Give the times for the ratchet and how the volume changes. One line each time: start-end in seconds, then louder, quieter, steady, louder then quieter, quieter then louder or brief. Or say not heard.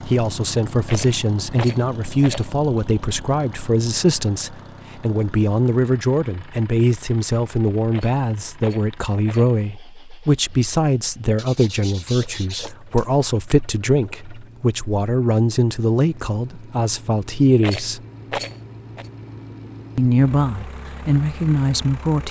not heard.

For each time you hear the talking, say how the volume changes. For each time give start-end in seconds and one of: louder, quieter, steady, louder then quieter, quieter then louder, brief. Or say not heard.
0.1-18.0 steady
19.9-22.2 brief.